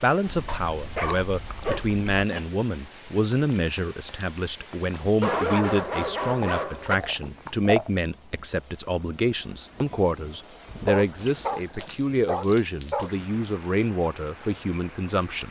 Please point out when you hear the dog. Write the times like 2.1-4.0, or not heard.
0.5-2.5, 5.2-7.0, 10.7-13.2.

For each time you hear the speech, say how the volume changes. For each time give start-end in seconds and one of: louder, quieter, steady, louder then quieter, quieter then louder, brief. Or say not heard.
0.0-15.4 steady.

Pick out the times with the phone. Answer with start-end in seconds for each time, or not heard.
not heard.